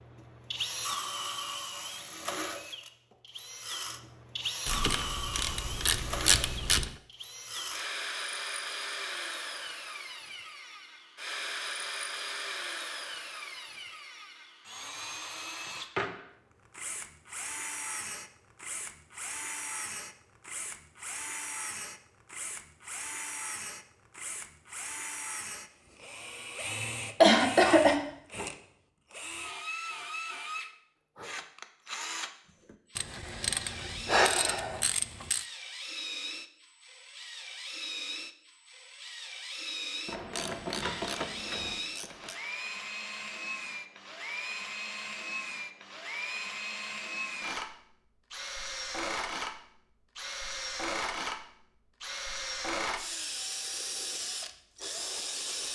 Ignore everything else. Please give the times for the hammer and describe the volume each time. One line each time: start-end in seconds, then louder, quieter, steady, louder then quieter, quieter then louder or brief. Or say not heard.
not heard.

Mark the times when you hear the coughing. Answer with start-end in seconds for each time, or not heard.
27.2-28.0.